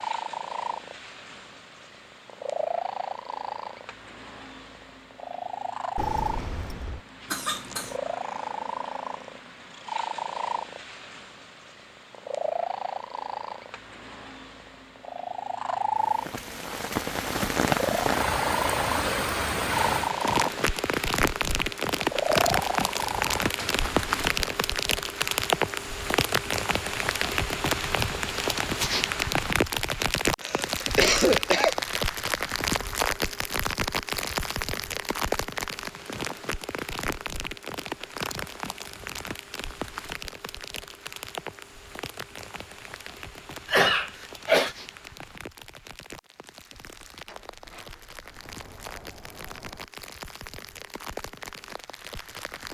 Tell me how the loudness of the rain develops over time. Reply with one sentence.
The loudness of the rain goes down.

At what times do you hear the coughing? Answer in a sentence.
You can hear the coughing from 7.3 to 8.0 s, from 30.4 to 31.8 s and from 43.6 to 44.8 s.